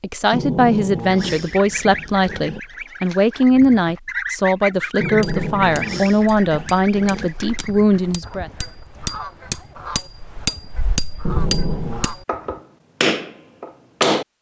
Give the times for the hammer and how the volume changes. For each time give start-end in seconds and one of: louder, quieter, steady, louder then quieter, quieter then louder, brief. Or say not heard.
5.2-14.2 louder.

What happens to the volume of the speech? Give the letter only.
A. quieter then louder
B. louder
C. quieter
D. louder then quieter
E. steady
E.